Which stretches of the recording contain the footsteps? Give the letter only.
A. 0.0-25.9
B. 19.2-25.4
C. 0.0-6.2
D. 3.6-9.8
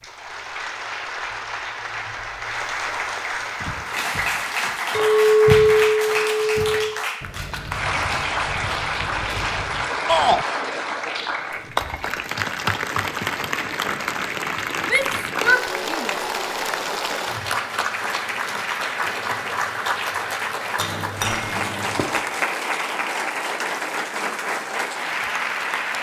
D.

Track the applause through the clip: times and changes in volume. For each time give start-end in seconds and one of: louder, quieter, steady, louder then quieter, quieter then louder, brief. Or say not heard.
0.0-25.9 steady.